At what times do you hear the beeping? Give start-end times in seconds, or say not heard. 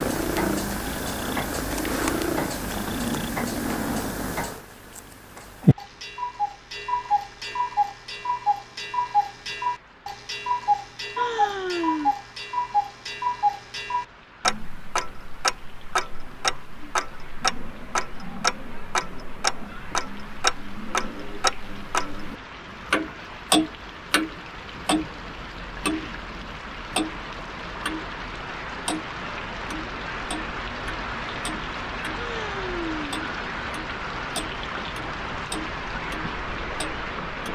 not heard.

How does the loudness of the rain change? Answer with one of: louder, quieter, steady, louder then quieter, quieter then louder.
louder.